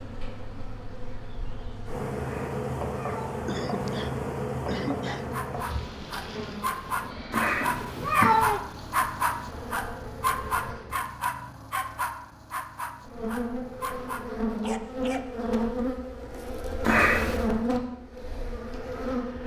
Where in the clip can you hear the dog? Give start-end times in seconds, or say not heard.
5.2-15.2.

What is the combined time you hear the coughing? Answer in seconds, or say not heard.
2 s.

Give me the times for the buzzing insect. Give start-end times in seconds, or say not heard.
0.0-11.0, 13.0-19.4.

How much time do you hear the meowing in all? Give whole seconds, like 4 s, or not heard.
4 s.